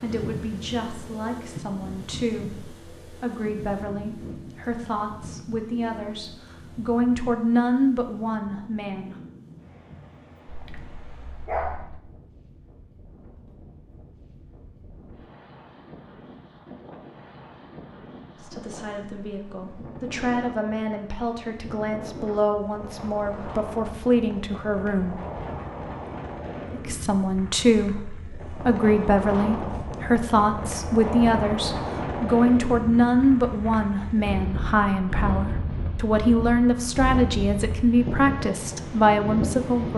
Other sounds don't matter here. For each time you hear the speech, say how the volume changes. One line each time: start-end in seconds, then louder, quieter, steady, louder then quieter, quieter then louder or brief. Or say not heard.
0.0-9.2 louder
18.4-25.1 louder
26.7-39.9 steady.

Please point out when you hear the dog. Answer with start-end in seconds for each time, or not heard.
10.4-12.0.